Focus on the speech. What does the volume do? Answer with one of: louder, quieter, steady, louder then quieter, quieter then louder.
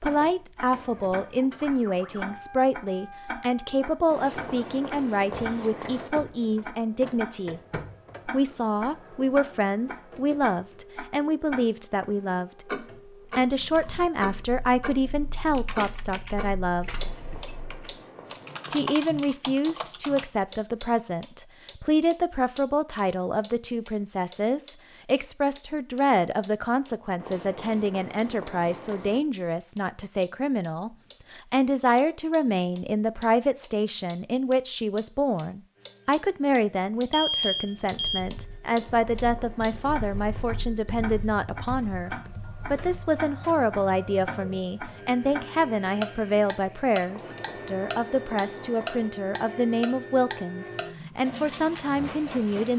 steady.